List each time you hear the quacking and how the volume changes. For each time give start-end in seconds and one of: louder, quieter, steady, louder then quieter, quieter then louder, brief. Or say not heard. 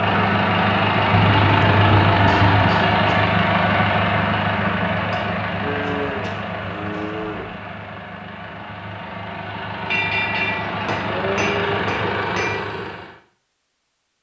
not heard.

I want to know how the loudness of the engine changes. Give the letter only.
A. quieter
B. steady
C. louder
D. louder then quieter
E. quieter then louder
E.